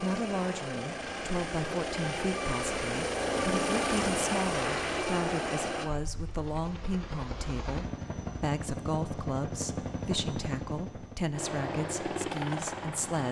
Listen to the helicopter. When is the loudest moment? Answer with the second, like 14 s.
4 s.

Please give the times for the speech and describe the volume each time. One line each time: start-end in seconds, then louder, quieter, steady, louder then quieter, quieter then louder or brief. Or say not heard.
0.0-13.2 steady.